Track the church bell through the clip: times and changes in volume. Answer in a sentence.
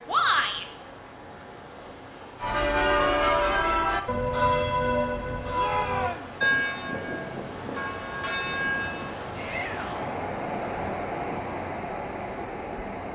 The church bell can be heard from 2.4 to 9.1 s, getting quieter.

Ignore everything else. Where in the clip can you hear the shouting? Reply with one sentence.
You can hear the shouting from 0.1 to 0.7 s, from 5.5 to 6.3 s and from 9.3 to 10.2 s.